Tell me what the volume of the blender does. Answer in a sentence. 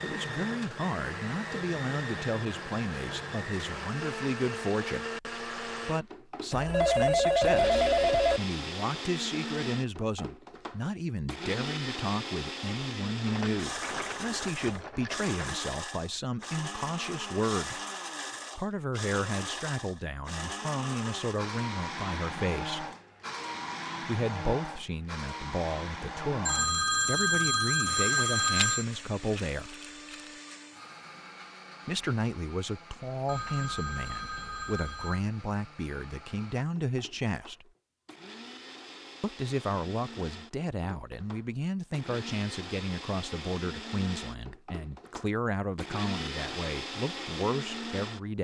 The loudness of the blender goes down, then up.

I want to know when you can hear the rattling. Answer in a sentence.
The rattling can be heard from 13.2 to 15.7 s and from 28.4 to 30.3 s.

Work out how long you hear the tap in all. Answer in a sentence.
The tap can't be heard in this clip.